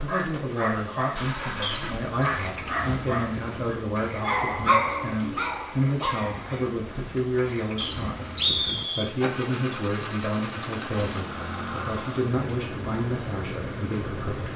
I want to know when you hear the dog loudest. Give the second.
5 s.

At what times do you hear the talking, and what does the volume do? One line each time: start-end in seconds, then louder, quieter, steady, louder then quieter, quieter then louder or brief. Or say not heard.
0.0-14.5 steady.